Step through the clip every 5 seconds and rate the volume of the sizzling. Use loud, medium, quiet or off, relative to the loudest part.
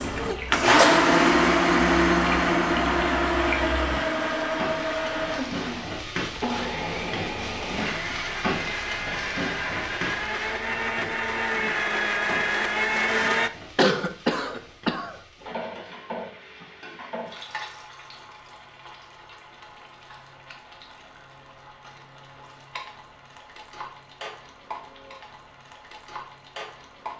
loud, loud, medium, medium, medium, medium.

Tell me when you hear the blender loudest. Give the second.
1 s.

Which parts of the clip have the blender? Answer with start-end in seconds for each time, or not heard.
0.0-13.5.